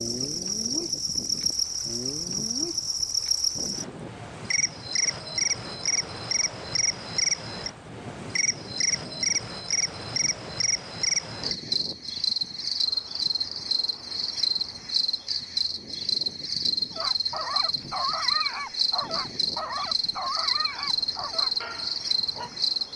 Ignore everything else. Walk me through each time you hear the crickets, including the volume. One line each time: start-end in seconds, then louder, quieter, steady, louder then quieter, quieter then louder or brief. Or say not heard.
0.0-22.9 steady.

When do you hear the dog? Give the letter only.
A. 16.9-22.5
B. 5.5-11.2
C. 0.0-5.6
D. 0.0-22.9
A.